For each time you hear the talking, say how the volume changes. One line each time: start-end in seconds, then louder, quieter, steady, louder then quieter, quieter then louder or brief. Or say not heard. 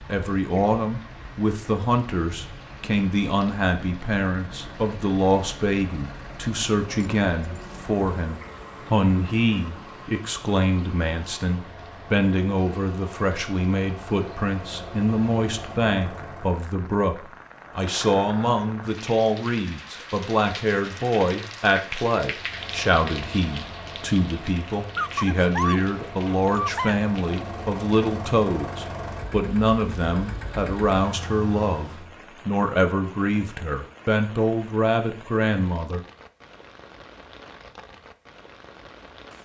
0.0-36.0 steady.